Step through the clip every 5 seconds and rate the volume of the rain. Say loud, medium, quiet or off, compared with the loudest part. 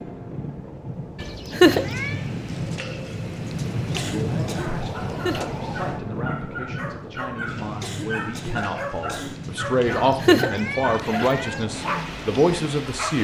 loud, loud, medium.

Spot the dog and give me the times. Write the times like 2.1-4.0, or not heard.
4.3-13.1.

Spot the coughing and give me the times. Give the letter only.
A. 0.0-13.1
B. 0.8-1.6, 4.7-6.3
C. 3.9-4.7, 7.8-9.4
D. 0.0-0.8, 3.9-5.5
C.